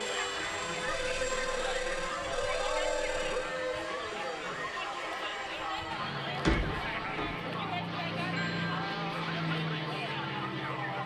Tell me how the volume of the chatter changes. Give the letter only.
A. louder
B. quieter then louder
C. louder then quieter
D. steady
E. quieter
D.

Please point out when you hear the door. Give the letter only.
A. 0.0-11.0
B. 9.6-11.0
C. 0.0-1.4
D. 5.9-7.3
D.